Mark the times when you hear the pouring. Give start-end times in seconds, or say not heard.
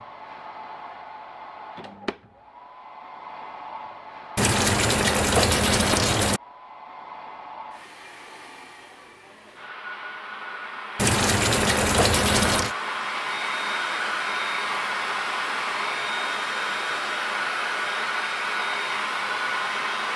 4.3-6.4, 10.9-12.8.